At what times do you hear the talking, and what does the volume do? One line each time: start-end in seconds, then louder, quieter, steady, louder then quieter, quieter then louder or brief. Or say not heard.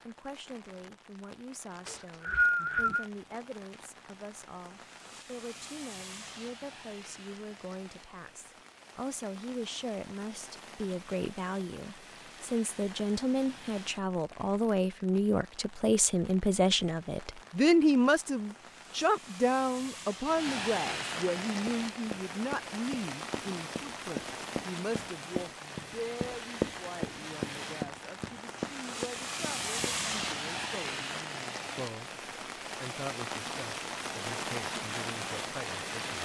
0.0-36.2 louder then quieter.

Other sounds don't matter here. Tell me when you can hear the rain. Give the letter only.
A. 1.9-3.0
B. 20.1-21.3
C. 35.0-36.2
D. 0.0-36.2
D.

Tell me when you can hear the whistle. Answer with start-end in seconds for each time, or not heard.
1.9-3.0.